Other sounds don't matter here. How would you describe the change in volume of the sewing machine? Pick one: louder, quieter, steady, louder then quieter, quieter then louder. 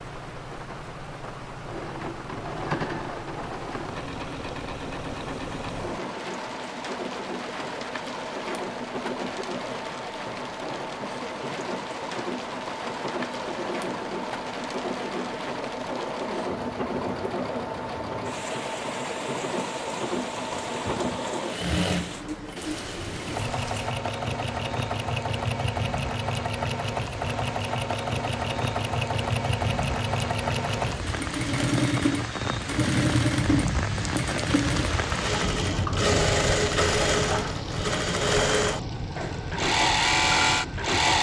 louder.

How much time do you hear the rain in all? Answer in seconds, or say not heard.
41 s.